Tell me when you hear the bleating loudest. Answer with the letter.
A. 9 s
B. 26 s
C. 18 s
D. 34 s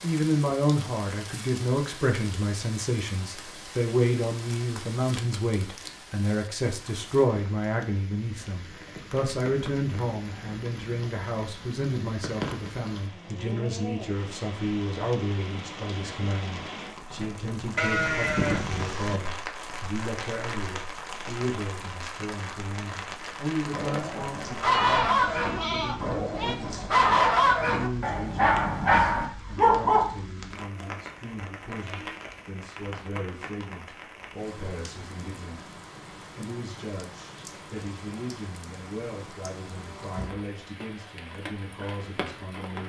C.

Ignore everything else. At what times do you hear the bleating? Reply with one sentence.
You can hear the bleating from 17.8 to 19.2 s and from 24.7 to 26.6 s.